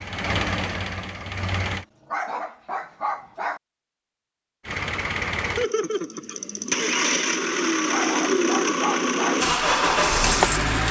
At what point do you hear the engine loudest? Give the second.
10 s.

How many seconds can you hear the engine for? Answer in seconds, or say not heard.
8 s.